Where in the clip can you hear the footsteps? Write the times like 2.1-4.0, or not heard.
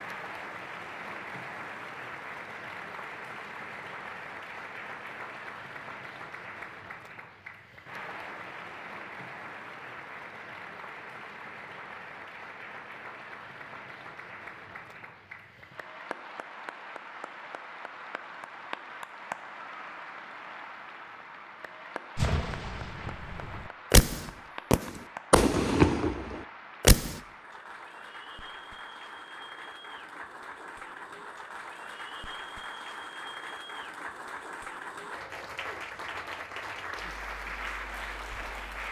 not heard.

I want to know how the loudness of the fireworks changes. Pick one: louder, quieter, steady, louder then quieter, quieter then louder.
louder then quieter.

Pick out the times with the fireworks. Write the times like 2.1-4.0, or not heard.
22.1-27.2.